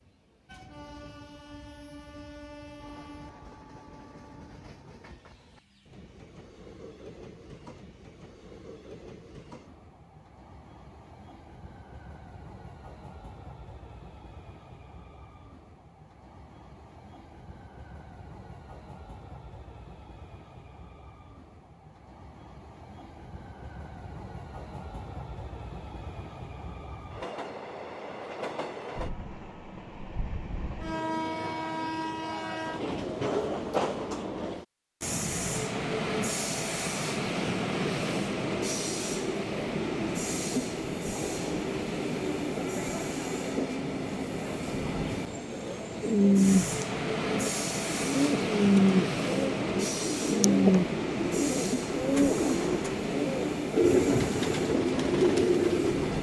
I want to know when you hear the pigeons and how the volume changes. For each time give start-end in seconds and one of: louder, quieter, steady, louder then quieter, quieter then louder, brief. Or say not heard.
46.0-56.1 steady.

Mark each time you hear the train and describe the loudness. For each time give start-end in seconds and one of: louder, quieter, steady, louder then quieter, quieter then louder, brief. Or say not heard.
0.0-56.1 louder.